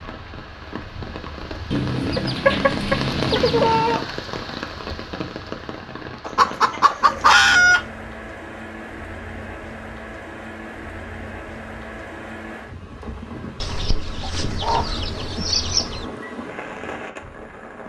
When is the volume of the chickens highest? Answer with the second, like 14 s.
7 s.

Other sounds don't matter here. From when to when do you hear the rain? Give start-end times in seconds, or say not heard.
0.0-17.8.